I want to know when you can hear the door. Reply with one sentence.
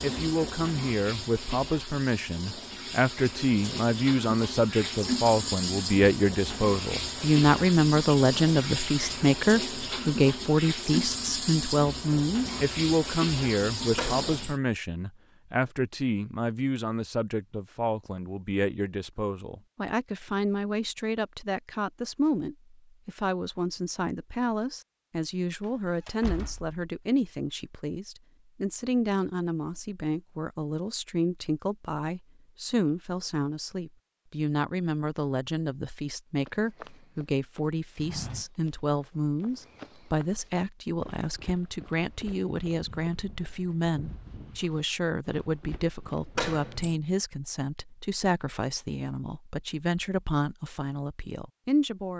The door can be heard from 13.9 to 14.6 s, from 25.6 to 26.8 s and from 46.4 to 47.0 s.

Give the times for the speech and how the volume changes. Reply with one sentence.
You can hear the speech from 0.0 to 52.1 s, getting quieter.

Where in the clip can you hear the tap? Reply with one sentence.
You can hear the tap from 0.0 to 14.6 s.